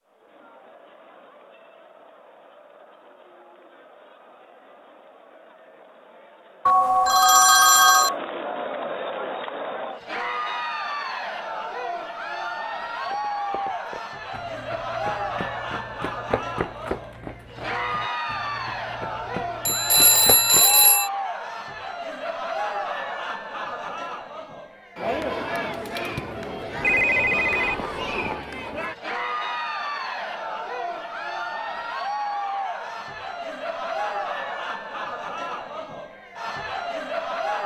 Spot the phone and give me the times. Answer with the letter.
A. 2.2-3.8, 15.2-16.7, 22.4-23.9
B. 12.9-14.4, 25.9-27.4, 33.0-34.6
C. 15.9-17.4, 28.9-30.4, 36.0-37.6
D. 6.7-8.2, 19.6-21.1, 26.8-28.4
D.